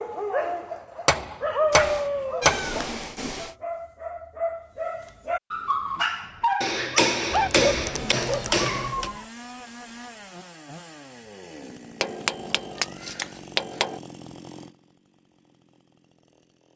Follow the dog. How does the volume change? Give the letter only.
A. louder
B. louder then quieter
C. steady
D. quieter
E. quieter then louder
E.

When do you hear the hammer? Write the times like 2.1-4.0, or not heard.
1.1-2.6, 6.6-9.1, 12.0-14.0.